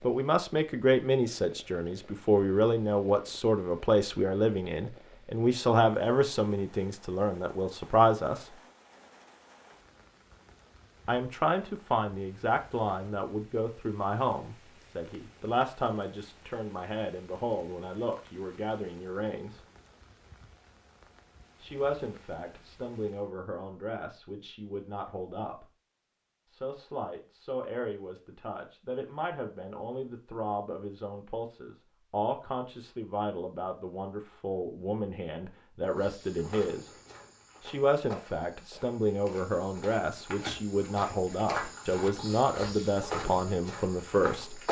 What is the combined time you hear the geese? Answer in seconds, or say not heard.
not heard.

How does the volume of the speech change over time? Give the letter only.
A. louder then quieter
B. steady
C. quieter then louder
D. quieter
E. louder
C.